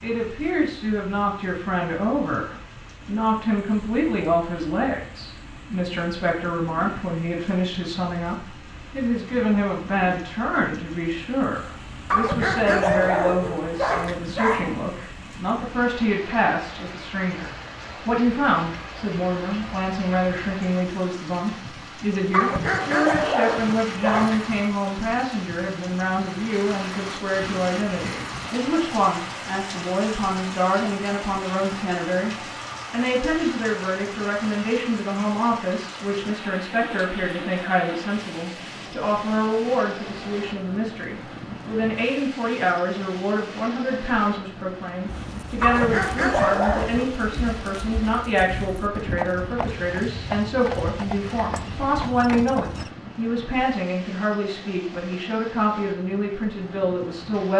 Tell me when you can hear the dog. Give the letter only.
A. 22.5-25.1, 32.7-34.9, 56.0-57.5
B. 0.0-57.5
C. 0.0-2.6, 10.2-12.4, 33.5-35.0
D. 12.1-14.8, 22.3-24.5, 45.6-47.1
D.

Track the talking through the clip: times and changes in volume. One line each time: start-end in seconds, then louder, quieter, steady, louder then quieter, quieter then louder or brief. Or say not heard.
0.0-57.5 steady.